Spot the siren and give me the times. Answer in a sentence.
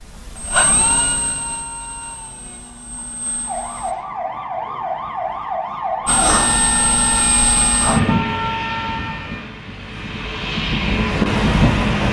The siren can be heard from 3.5 to 9.4 s.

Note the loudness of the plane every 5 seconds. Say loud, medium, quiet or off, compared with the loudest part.
medium, loud, loud.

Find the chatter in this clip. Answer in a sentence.
You can't hear the chatter here.